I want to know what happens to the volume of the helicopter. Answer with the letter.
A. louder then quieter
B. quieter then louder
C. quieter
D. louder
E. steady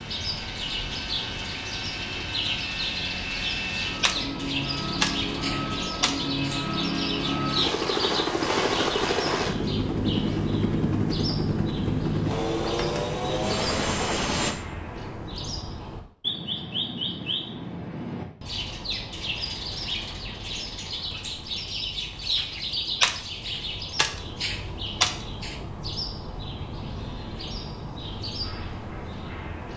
D.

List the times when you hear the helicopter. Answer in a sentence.
You can hear the helicopter from 0.0 to 14.6 s.